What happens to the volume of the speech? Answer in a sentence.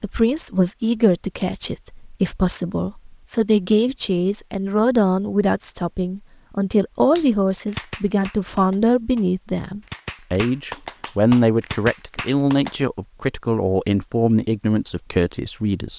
The volume of the speech stays about the same.